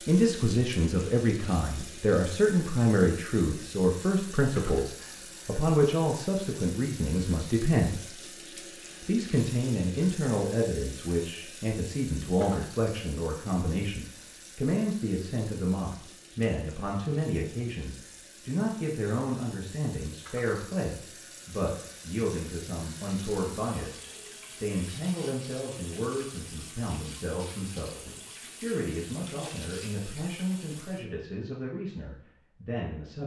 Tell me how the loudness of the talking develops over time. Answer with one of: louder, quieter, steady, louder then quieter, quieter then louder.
quieter.